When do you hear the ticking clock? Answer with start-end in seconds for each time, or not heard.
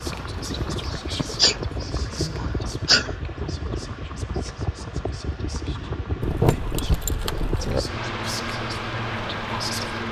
not heard.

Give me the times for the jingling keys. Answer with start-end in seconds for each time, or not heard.
0.4-1.6, 6.2-7.8.